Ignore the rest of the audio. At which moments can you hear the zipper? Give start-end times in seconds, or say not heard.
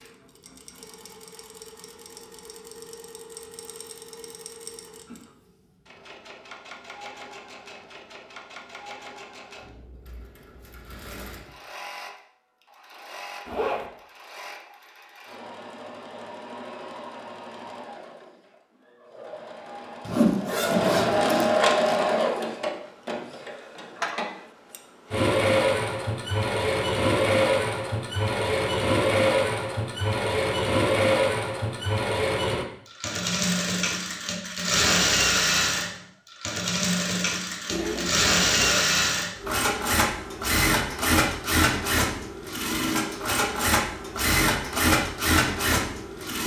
13.4-13.9, 20.1-21.9, 37.6-39.0.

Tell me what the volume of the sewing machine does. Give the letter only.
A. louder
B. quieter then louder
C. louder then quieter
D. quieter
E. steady
A.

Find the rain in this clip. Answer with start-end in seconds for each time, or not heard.
not heard.